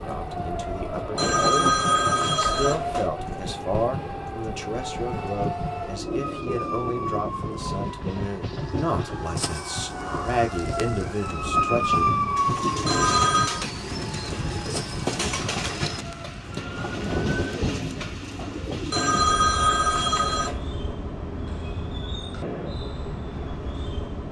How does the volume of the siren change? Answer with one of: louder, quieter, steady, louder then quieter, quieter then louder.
louder then quieter.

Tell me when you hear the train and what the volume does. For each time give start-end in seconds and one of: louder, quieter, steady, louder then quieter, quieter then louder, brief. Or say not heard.
0.0-24.2 steady.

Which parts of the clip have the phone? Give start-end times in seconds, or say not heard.
1.1-3.1, 12.8-13.7, 18.9-20.6.